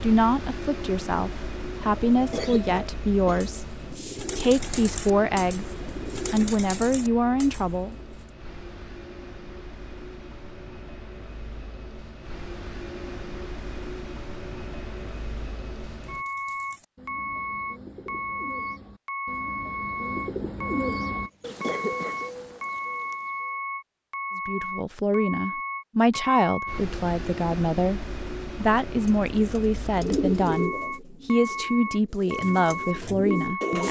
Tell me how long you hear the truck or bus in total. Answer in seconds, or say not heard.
34 s.